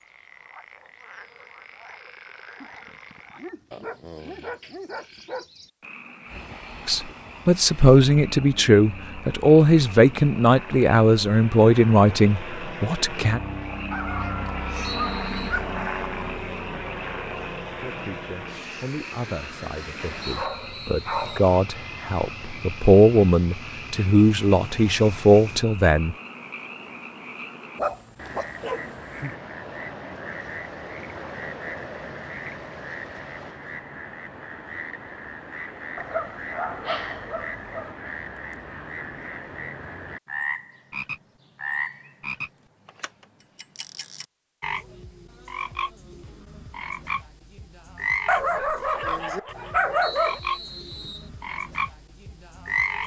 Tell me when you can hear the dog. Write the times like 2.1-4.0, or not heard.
2.6-5.5, 13.9-15.8, 20.0-21.6, 27.8-29.4, 36.0-38.0, 48.2-50.4.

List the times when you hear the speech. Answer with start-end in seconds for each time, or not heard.
6.8-13.4, 17.8-26.1.